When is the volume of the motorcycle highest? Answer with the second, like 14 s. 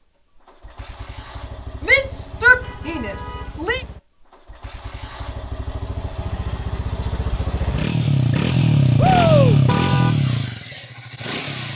9 s.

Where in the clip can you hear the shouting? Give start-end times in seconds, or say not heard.
1.9-3.8, 8.9-9.6.